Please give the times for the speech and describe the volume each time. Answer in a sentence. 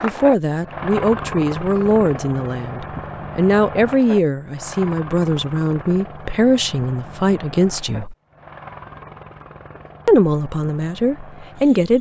You can hear the speech from 0.0 to 8.2 s, at a steady volume; and briefly from 10.1 to 11.9 s.